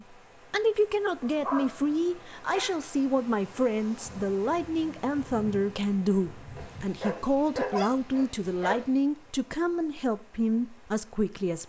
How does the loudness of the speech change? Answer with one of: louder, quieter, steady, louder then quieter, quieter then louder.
steady.